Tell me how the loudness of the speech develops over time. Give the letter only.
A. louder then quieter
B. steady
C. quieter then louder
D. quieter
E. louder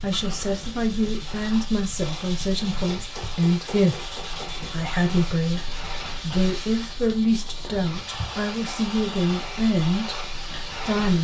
B.